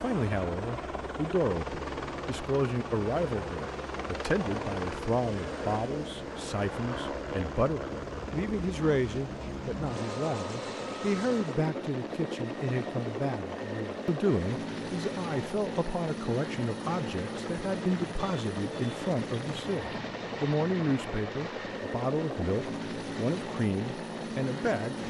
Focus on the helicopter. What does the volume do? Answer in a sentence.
The volume of the helicopter stays about the same.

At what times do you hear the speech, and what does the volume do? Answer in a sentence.
You can hear the speech from 0.0 to 25.0 s, at a steady volume.